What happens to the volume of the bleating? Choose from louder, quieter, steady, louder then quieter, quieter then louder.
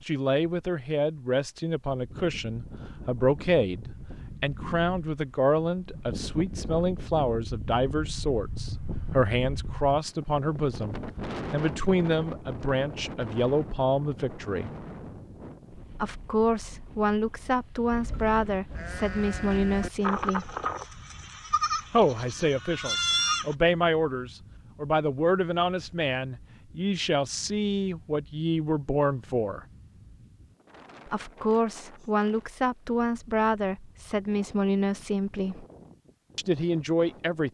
louder.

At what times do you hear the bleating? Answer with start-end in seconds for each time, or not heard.
17.9-23.6.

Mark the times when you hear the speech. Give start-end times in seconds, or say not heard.
0.1-14.7, 15.9-20.6, 21.9-29.6, 31.1-35.6, 36.4-37.4.